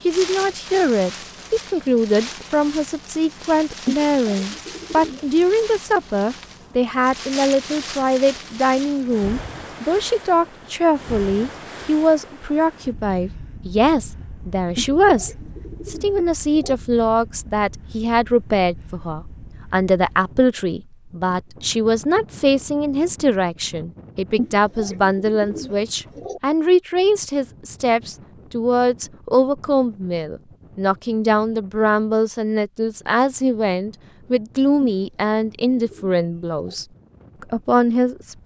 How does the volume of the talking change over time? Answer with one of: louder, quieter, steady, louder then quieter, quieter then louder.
steady.